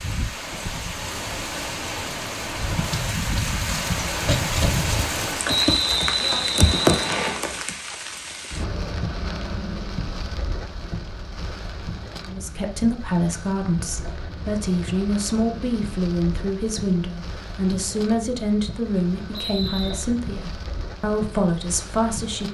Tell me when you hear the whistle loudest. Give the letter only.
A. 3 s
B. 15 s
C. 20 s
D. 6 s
D.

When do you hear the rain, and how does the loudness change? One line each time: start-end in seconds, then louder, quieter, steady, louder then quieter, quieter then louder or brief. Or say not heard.
0.0-22.4 quieter.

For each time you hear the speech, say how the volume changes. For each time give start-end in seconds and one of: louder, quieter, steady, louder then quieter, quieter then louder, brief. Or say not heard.
12.2-22.4 steady.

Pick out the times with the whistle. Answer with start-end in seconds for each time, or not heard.
5.5-7.4, 19.3-20.0.